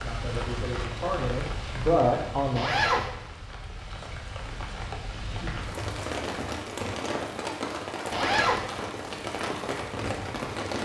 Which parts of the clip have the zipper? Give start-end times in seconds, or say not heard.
2.5-3.1, 8.1-8.7.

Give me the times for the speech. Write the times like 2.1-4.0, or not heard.
0.0-2.9.